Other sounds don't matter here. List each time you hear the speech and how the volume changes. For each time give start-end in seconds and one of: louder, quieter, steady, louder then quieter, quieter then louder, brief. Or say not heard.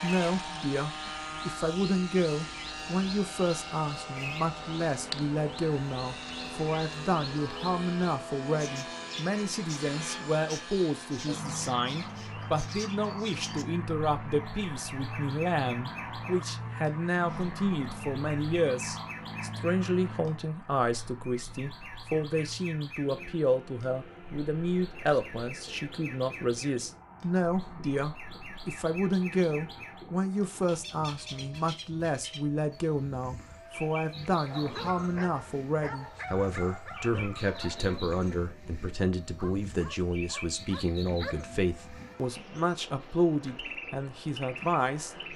0.0-45.3 steady.